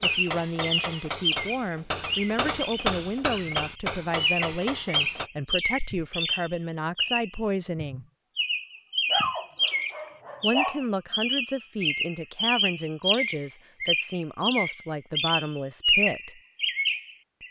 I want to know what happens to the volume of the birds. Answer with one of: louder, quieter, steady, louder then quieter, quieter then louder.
steady.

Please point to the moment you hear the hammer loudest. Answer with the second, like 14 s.
3 s.